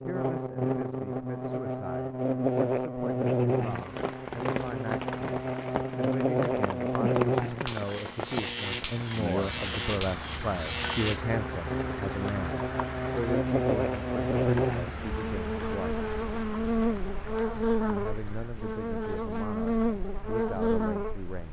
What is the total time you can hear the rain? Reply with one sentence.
The rain can be heard for 18 seconds in total.